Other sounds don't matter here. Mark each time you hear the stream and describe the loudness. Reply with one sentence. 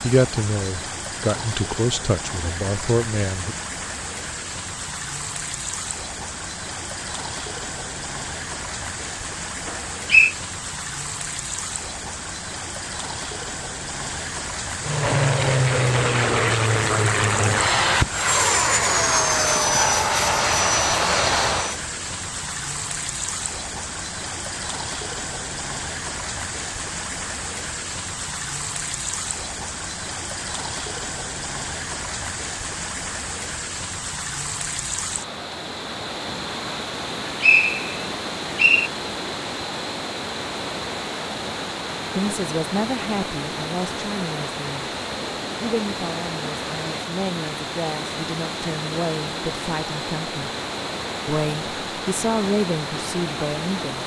The stream can be heard from 0.0 to 54.0 s, at a steady volume.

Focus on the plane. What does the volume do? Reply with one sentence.
The volume of the plane stays about the same.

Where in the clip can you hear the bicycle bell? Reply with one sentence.
You can't hear the bicycle bell here.